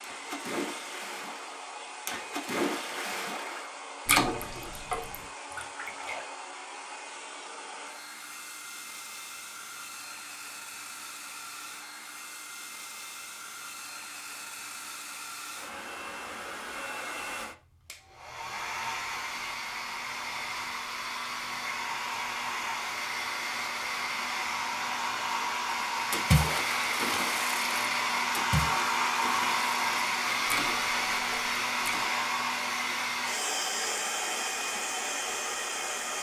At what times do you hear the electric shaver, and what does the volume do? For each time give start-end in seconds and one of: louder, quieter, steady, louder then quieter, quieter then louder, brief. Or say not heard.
not heard.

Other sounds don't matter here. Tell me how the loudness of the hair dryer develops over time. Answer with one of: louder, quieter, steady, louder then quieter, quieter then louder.
louder.